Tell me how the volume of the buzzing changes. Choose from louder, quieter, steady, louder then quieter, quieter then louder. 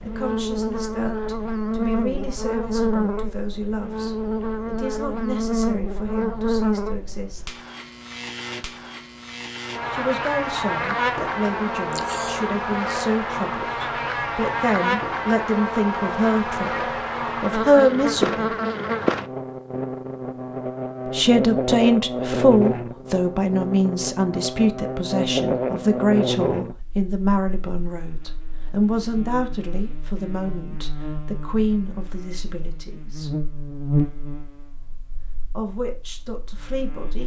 quieter.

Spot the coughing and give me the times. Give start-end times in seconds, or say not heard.
11.9-12.4.